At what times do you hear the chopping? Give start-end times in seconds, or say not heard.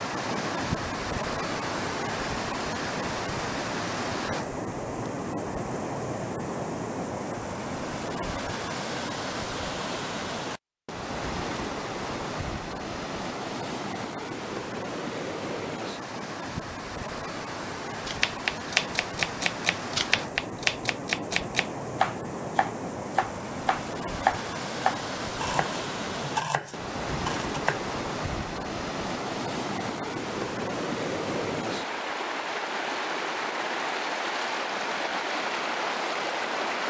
18.1-27.8.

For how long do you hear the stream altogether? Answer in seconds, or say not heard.
37 s.